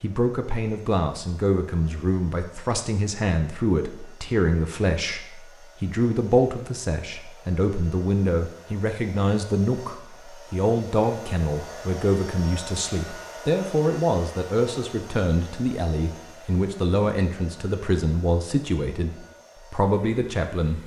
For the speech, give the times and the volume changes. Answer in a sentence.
The speech can be heard from 0.0 to 20.8 s, at a steady volume.